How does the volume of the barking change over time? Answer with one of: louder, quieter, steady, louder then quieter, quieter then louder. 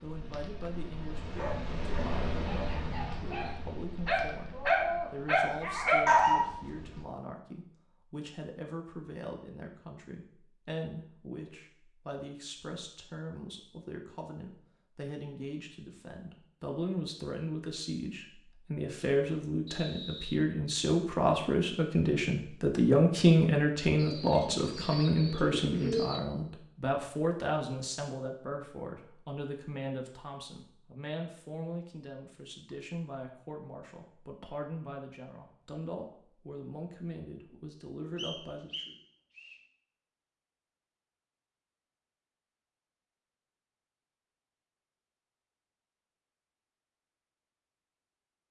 louder.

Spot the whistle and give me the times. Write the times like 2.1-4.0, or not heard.
19.6-20.4, 38.1-39.5.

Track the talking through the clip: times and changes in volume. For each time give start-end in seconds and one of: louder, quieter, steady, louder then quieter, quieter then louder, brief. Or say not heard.
0.0-39.0 louder then quieter.